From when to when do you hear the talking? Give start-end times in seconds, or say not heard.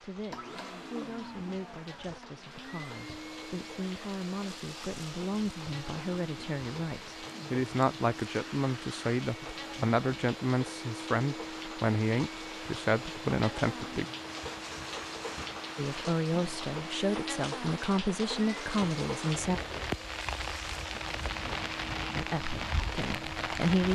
0.0-14.1, 15.8-19.6, 22.1-23.9.